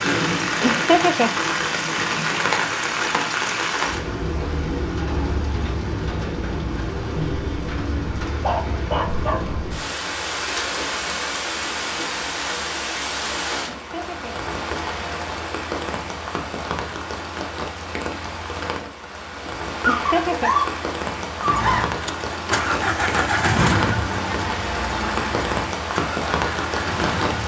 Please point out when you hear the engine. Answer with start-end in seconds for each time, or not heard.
21.4-27.4.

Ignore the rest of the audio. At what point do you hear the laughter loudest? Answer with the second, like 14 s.
1 s.